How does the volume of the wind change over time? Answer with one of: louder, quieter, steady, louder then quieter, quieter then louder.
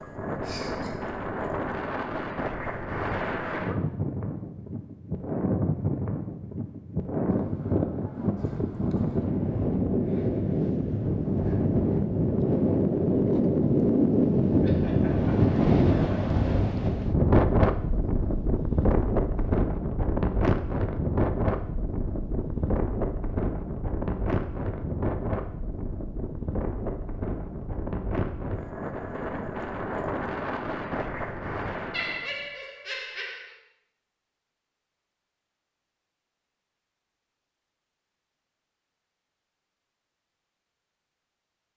louder then quieter.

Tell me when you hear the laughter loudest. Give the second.
32 s.